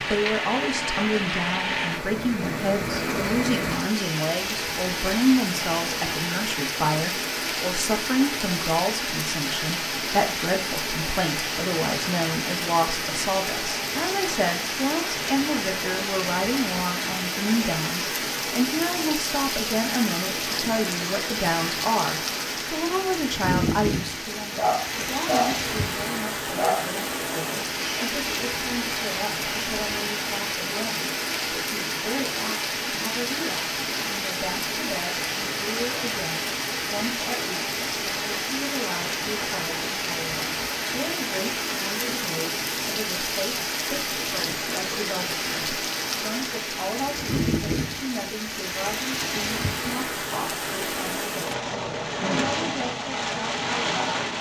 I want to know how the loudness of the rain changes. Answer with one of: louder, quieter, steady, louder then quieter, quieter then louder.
steady.